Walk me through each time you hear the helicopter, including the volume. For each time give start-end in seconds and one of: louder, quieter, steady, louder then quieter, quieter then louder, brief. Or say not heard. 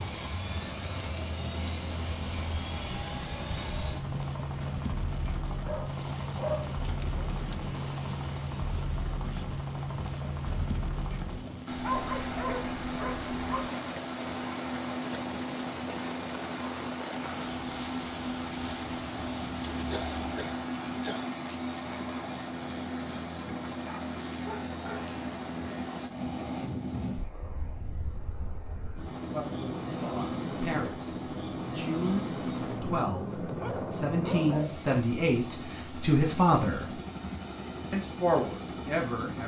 0.0-39.4 steady.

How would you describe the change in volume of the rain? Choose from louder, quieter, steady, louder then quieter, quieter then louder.
steady.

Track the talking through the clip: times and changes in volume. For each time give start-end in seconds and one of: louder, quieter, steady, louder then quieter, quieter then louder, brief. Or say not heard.
29.2-37.0 louder
37.9-39.4 brief.